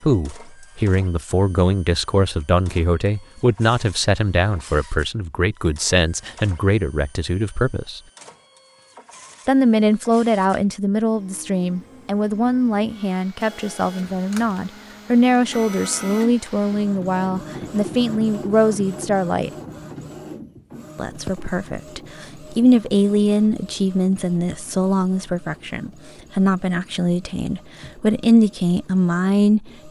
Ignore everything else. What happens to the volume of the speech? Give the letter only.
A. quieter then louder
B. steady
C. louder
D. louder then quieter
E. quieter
B.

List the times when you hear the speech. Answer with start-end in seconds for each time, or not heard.
0.0-8.0, 9.4-19.5, 20.9-29.8.